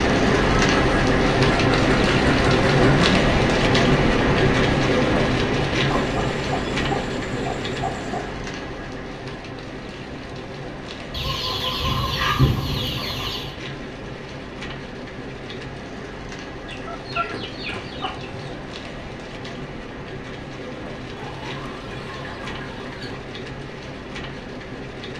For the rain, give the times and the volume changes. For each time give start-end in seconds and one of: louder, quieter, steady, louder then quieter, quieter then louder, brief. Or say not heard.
0.0-25.1 quieter.